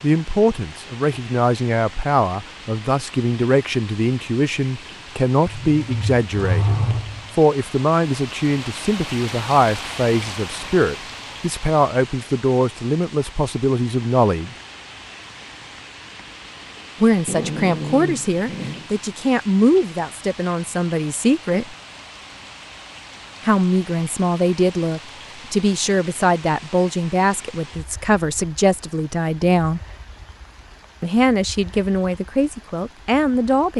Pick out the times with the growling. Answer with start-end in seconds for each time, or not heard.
5.5-7.3, 17.2-18.9.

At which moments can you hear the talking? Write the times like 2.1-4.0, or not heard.
0.0-14.6, 17.0-21.8, 23.4-29.8, 31.0-33.7.